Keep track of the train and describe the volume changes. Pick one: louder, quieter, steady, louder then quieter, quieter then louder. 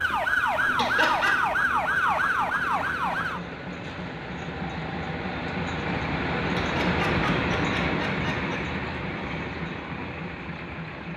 louder then quieter.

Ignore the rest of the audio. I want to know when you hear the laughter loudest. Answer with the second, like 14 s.
1 s.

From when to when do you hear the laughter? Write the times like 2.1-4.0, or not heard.
0.8-1.4, 6.5-8.7.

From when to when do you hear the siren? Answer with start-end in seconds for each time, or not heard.
0.0-3.4.